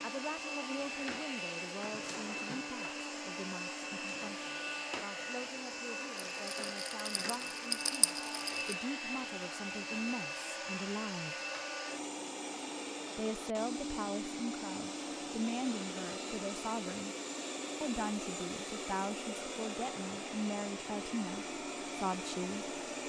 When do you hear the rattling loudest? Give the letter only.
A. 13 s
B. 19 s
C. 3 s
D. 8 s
D.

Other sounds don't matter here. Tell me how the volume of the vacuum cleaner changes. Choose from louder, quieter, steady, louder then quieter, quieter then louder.
steady.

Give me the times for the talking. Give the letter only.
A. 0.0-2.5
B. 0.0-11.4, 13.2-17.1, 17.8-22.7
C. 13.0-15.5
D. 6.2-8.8
B.